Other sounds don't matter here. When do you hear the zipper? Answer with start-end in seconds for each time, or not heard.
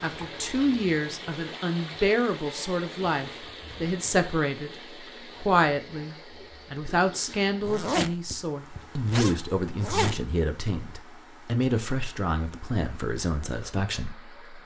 7.6-10.2.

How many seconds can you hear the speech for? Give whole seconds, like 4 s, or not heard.
14 s.